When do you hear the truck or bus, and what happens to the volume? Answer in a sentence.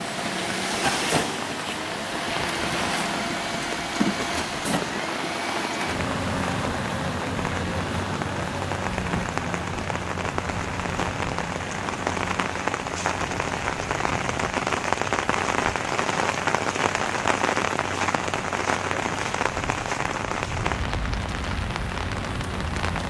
You can hear the truck or bus from 0.0 to 23.0 s, getting quieter.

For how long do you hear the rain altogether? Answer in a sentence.
You can hear the rain for 23 seconds altogether.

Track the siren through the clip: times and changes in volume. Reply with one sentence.
The siren can't be heard in this clip.